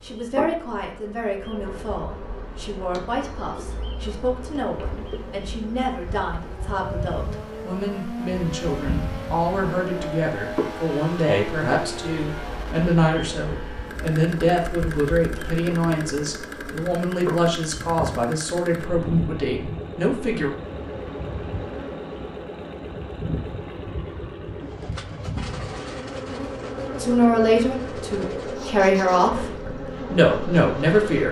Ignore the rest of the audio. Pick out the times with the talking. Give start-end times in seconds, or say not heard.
0.0-20.5, 27.0-31.2.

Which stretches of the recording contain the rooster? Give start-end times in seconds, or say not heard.
not heard.